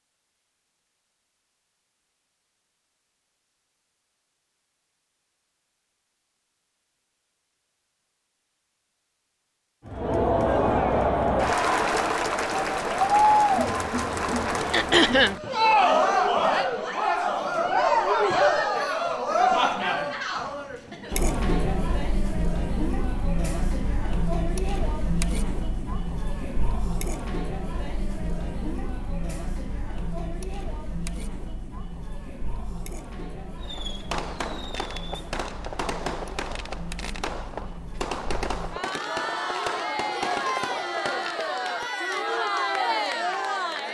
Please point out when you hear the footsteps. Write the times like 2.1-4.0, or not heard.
not heard.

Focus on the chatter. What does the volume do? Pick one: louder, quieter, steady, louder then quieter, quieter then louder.
quieter then louder.